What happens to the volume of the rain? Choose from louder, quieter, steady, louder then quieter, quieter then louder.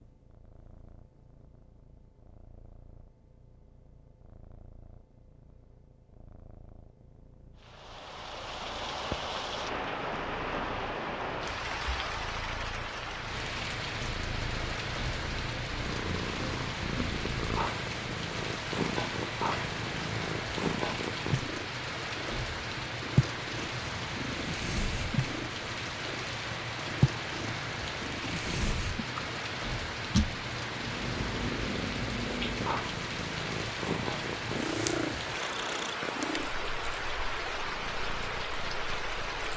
steady.